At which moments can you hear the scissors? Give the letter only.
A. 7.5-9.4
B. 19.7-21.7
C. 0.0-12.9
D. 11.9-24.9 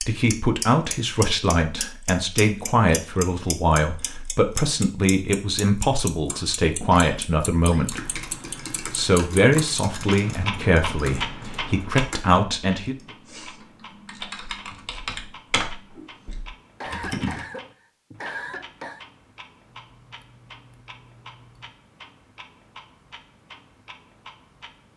B.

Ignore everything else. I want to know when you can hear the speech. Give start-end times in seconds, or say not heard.
0.0-12.9.